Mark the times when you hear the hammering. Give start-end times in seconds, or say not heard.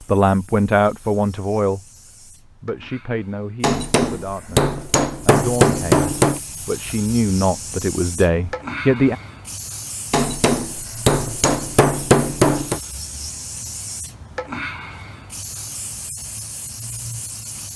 3.6-6.4, 10.1-12.8.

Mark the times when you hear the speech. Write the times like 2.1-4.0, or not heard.
0.1-1.8, 2.6-9.2.